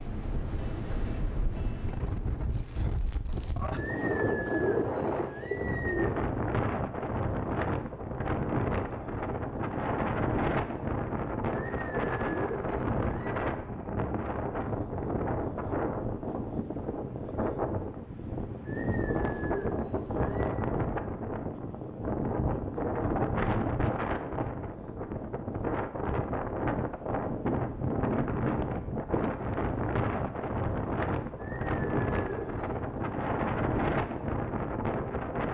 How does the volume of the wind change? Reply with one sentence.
The loudness of the wind stays about the same.